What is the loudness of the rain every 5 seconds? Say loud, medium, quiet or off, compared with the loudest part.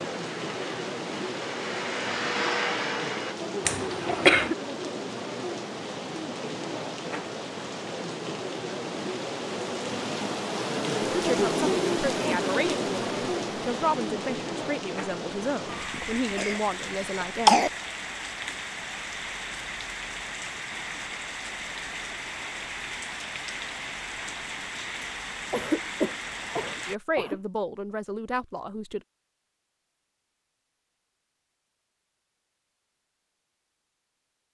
medium, medium, loud, medium, medium, medium, off.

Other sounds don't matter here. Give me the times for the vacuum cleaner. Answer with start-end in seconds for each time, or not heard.
0.0-3.4.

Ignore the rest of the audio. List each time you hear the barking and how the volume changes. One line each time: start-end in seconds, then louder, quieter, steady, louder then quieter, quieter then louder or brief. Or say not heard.
not heard.